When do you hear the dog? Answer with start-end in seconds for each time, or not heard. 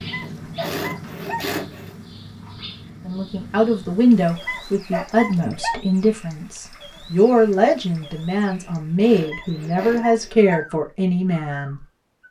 0.1-1.4, 4.4-5.8, 9.2-10.7.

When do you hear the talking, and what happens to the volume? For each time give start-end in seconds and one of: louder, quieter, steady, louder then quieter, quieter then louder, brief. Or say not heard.
3.0-12.2 steady.